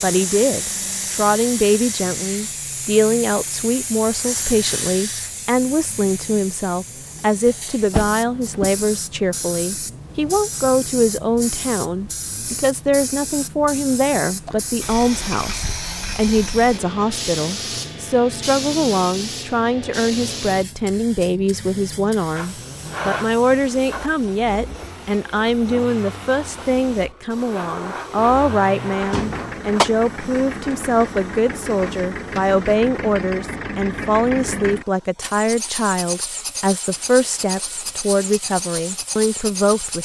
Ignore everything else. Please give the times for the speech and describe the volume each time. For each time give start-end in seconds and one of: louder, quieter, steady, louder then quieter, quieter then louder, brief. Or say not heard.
0.0-40.0 steady.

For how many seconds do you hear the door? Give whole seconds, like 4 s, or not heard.
2 s.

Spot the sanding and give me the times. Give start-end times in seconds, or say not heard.
not heard.